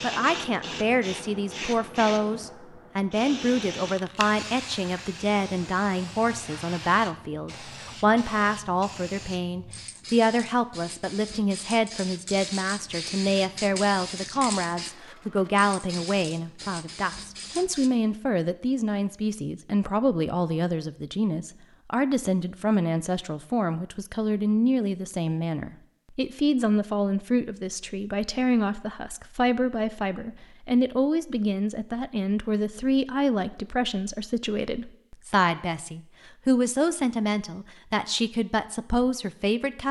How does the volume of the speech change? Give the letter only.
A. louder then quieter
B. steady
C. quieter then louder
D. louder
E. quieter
B.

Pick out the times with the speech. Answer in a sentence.
You can hear the speech from 0.0 to 39.8 s.